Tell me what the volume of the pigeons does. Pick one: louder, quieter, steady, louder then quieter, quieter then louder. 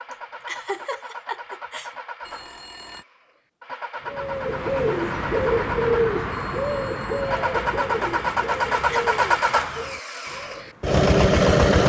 quieter.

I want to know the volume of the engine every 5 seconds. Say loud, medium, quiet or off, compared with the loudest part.
quiet, medium, loud.